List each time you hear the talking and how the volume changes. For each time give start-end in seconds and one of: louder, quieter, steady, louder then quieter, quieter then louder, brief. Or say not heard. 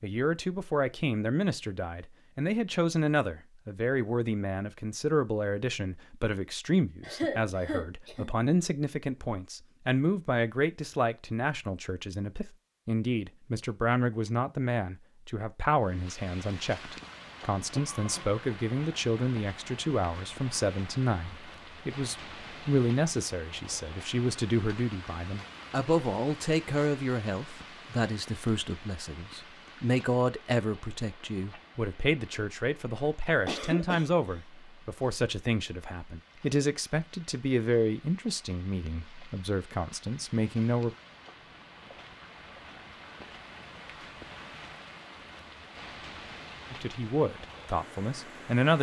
0.0-41.0 steady
46.7-48.7 brief.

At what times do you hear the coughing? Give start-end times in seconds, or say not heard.
7.0-8.3, 17.7-18.4, 33.5-34.4.